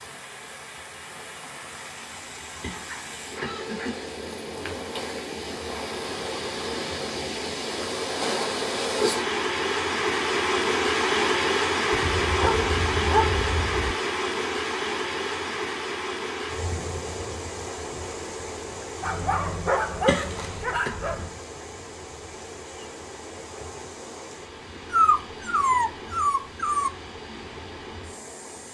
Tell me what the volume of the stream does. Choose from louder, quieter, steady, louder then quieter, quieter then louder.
louder then quieter.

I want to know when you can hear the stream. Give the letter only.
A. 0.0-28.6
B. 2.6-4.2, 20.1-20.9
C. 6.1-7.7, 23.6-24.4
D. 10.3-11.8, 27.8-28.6
A.